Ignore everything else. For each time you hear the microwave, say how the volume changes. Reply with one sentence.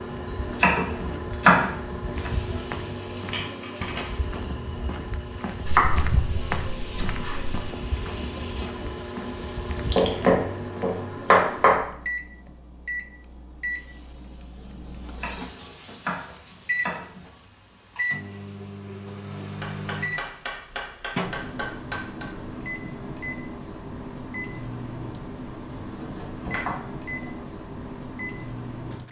The microwave can be heard from 0.0 to 29.0 s, at a steady volume.